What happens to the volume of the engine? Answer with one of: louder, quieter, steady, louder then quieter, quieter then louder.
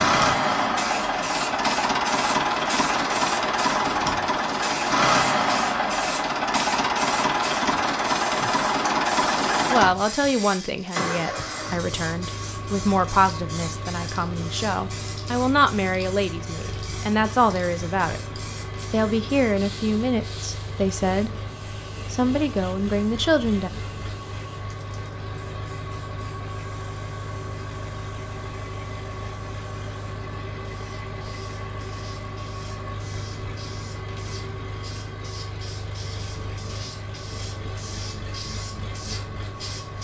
quieter.